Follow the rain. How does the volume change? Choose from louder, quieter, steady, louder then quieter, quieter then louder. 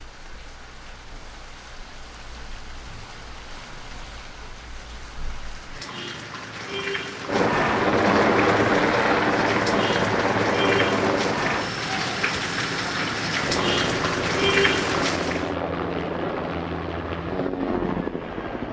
louder.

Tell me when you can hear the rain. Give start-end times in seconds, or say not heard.
0.0-15.6.